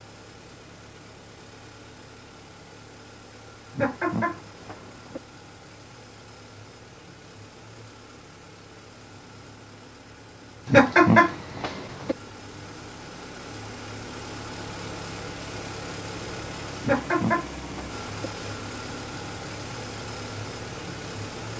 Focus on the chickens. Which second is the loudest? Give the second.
11 s.